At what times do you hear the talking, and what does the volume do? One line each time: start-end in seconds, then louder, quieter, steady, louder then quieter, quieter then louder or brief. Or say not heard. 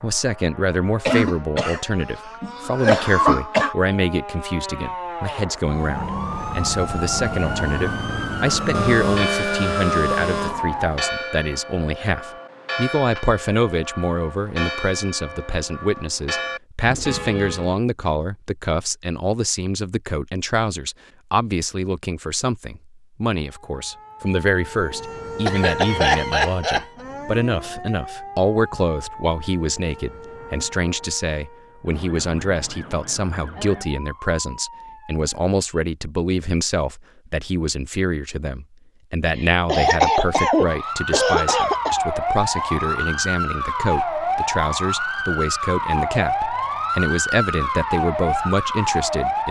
0.0-49.4 steady.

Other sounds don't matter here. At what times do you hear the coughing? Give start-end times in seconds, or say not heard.
1.1-1.8, 2.4-3.8, 25.4-26.9, 39.4-42.0.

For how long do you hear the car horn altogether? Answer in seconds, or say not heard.
2 s.